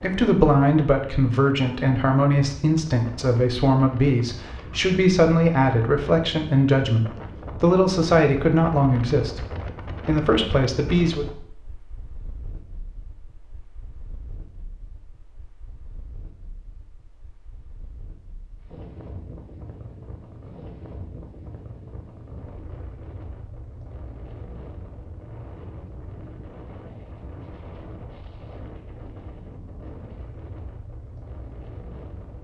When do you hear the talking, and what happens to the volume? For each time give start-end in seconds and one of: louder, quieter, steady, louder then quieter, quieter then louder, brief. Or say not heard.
0.0-9.4 steady
10.1-11.2 brief.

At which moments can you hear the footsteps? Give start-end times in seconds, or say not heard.
not heard.